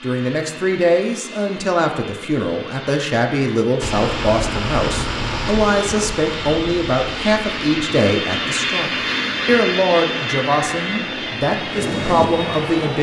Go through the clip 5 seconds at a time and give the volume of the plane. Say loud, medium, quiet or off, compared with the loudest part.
medium, loud, loud.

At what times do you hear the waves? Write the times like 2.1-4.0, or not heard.
3.8-12.9.